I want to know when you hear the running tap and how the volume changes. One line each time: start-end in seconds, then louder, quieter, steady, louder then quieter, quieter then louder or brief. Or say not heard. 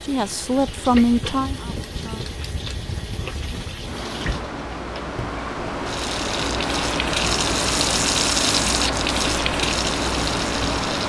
0.0-11.0 louder.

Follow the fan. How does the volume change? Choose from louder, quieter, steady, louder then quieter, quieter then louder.
louder.